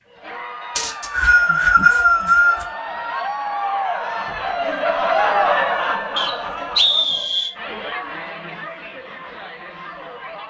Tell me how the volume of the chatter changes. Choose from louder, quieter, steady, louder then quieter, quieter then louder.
louder then quieter.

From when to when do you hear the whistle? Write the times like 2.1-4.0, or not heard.
0.8-2.6, 6.2-7.5.